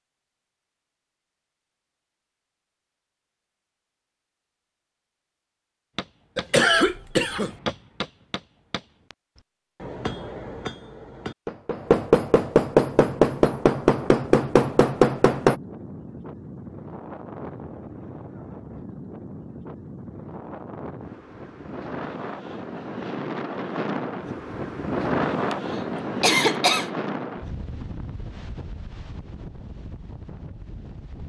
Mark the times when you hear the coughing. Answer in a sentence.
The coughing can be heard from 6.3 to 7.5 s and from 25.5 to 26.9 s.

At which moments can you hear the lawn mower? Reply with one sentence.
You can't hear the lawn mower here.